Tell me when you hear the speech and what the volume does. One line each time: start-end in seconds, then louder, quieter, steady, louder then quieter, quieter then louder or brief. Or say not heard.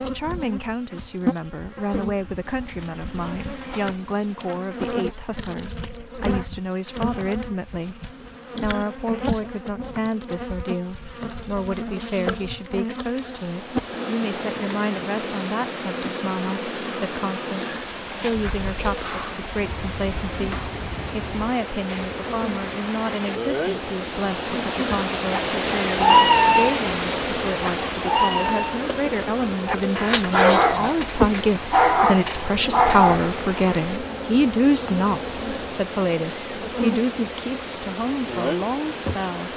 0.0-39.5 louder.